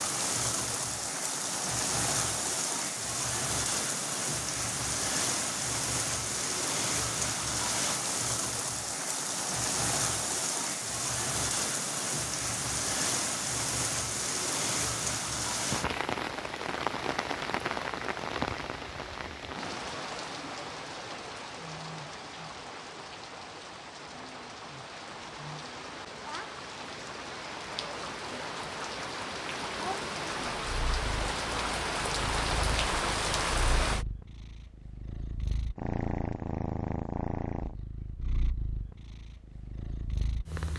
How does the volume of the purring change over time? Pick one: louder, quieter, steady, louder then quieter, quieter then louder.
louder then quieter.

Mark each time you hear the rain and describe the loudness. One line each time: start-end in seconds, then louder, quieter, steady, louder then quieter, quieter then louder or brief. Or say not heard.
0.0-34.0 quieter then louder.